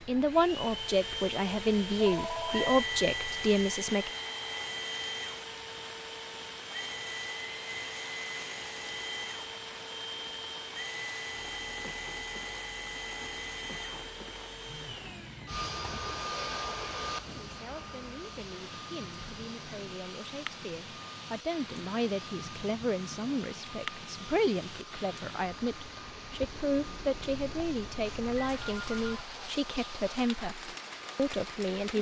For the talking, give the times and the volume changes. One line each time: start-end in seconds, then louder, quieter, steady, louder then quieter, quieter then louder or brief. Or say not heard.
0.1-4.1 steady
17.3-31.9 louder.